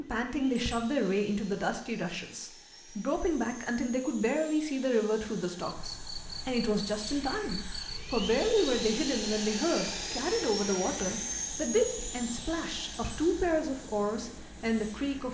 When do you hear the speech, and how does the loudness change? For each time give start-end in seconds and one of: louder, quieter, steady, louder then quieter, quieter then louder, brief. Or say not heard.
0.0-15.2 steady.